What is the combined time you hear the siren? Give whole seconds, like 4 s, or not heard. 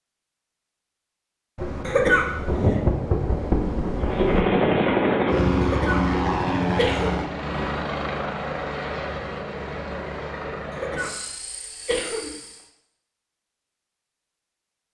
not heard.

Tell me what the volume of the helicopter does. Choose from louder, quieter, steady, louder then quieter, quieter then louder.
quieter.